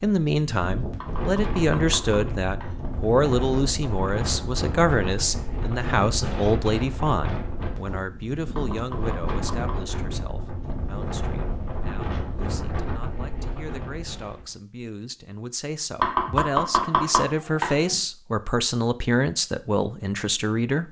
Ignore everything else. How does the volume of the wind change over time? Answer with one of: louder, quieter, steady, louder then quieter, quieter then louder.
steady.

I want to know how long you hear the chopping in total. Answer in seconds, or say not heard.
5 s.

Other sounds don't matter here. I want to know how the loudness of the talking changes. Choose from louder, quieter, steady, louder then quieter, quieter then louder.
quieter then louder.